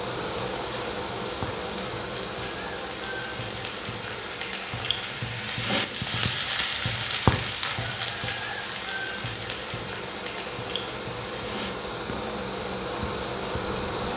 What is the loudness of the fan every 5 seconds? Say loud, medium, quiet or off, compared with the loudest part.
loud, medium, loud.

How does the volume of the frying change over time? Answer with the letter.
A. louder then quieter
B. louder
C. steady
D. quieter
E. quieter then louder
A.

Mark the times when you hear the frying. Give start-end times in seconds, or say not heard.
0.0-14.1.